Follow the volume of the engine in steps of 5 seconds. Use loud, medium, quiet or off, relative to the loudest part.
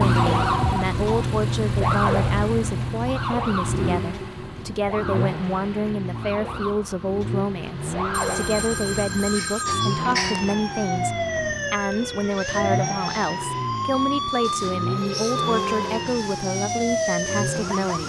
loud, medium, medium, medium.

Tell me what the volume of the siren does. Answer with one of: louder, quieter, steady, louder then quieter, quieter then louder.
quieter then louder.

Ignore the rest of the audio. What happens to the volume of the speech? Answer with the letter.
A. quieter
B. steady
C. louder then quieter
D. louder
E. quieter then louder
B.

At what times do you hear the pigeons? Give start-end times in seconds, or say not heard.
not heard.